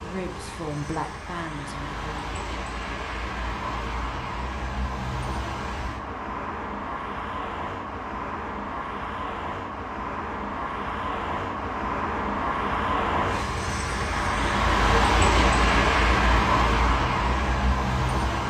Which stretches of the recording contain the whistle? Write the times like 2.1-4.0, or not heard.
not heard.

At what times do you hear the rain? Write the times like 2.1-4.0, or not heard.
not heard.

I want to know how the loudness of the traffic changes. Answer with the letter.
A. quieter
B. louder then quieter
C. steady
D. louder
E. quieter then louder
D.